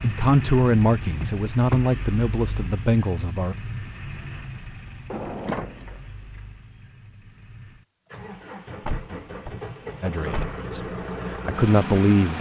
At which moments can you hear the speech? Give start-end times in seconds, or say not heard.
0.0-3.5, 10.0-10.8, 11.4-12.3.